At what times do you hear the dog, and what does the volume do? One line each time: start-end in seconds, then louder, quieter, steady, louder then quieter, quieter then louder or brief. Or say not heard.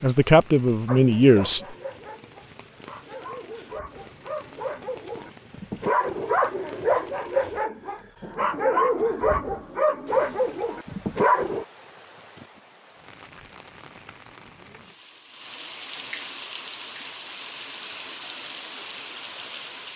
0.8-11.7 louder.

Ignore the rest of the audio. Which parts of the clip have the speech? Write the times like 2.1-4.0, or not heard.
0.0-1.6.